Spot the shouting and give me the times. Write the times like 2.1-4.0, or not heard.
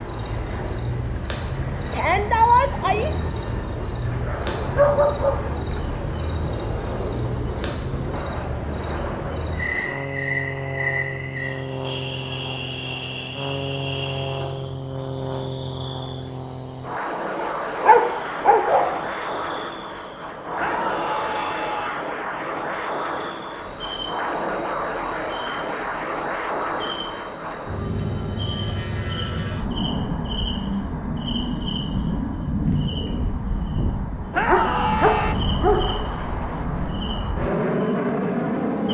1.9-3.1, 20.6-22.1, 34.3-35.4.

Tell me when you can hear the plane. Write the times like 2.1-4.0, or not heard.
0.0-38.8.